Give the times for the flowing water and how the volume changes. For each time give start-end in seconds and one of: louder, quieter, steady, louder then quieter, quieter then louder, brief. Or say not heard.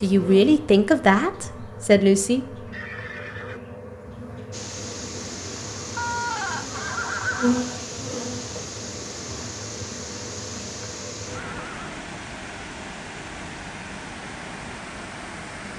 4.5-15.7 steady.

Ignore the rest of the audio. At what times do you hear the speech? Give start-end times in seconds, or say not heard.
0.0-2.5.